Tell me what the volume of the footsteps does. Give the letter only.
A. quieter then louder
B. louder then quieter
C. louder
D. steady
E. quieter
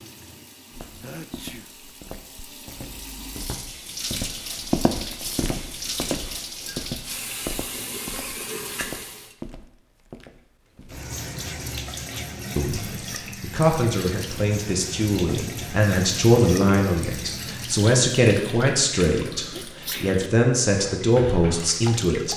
B.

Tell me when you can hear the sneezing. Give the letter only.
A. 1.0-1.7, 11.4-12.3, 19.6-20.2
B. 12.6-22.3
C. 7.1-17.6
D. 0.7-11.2
A.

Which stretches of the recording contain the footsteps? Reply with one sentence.
You can hear the footsteps from 0.7 to 11.2 s.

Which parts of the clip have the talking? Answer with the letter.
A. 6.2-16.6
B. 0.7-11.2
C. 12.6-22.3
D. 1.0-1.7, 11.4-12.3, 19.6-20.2
C.